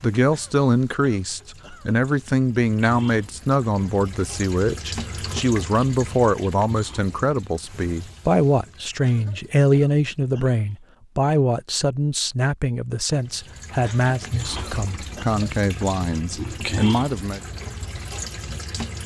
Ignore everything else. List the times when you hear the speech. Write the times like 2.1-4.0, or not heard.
0.0-17.4.